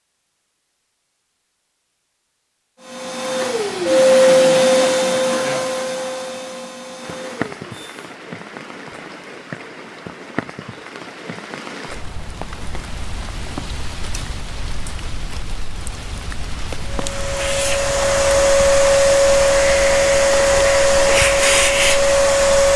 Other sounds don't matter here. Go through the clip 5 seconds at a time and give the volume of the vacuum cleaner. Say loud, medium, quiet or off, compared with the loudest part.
loud, medium, off, loud, loud.